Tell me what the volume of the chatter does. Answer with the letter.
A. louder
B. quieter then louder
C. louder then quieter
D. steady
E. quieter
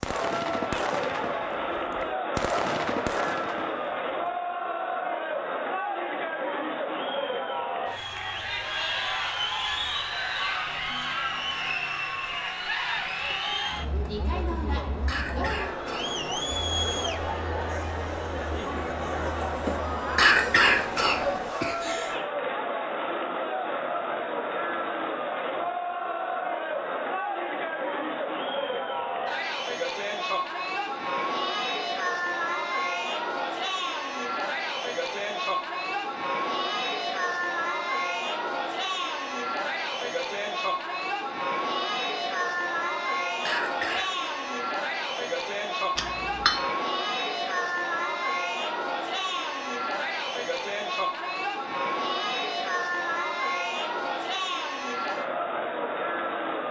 D.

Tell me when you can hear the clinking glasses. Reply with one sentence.
The clinking glasses can be heard from 46.0 to 46.7 s.